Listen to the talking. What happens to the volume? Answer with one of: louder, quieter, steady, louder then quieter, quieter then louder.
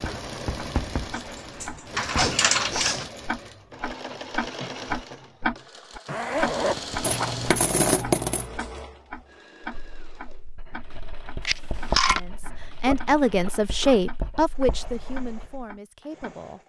quieter.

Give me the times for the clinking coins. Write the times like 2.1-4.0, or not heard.
1.1-3.0, 7.0-8.5, 11.4-12.2.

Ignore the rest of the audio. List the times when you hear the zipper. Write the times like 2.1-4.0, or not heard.
2.1-3.1, 6.0-7.5, 12.7-14.0.